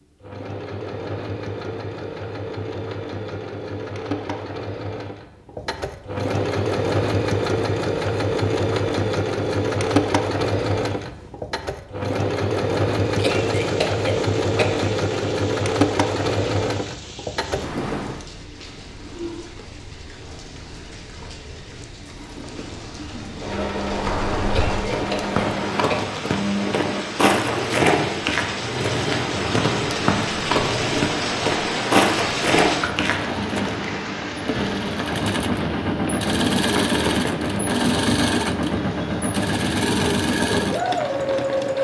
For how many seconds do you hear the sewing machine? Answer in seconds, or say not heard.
38 s.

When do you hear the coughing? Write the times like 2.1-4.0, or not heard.
13.2-14.9, 24.5-26.1.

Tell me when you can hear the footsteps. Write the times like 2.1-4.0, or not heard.
23.9-33.9.